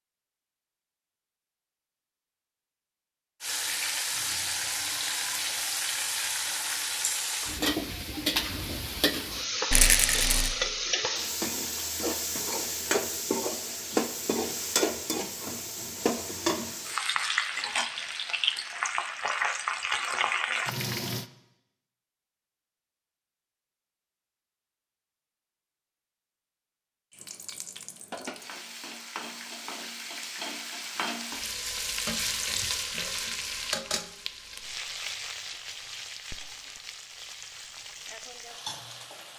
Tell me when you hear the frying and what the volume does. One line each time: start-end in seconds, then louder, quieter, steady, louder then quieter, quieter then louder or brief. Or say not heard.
3.4-21.2 steady
27.1-39.3 louder then quieter.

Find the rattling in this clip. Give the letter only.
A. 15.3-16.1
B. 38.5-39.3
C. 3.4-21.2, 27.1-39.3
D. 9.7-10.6
D.